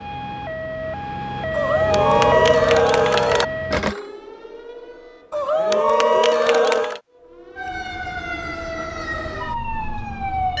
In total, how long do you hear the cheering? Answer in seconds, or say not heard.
4 s.